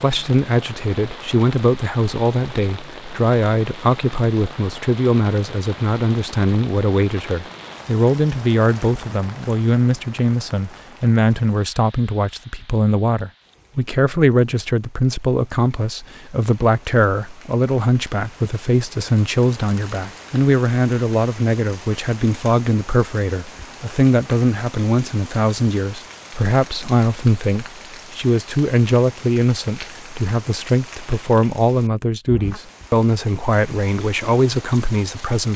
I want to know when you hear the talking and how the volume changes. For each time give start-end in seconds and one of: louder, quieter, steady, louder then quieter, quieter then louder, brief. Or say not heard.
0.0-35.5 steady.